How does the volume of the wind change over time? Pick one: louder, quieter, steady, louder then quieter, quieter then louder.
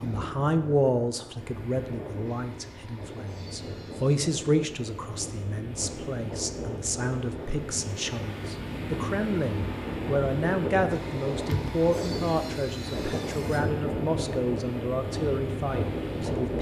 louder.